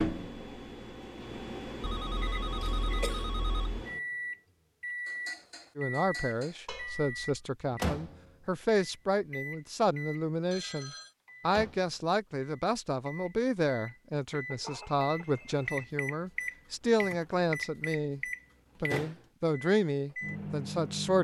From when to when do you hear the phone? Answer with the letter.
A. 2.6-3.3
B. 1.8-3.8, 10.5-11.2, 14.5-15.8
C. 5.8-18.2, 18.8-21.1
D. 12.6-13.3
B.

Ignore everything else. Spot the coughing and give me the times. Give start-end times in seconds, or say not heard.
2.6-3.3.